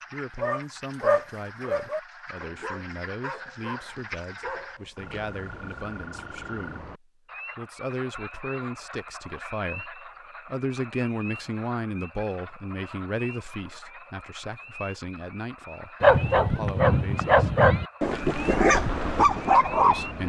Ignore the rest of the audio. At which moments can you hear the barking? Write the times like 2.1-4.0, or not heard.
0.3-5.9, 16.0-20.2.